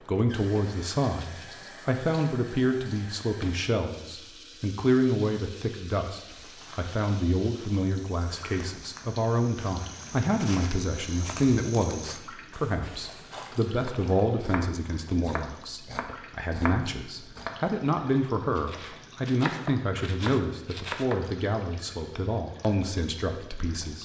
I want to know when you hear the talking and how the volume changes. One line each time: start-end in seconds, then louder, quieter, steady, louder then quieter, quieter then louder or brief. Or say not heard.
0.1-24.0 steady.